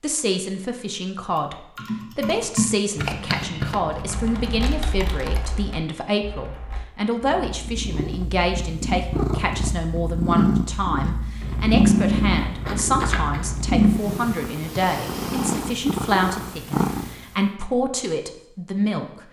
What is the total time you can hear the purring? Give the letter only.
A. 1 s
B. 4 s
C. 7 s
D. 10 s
D.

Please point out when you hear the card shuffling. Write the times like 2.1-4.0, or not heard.
3.0-4.8, 11.4-13.8.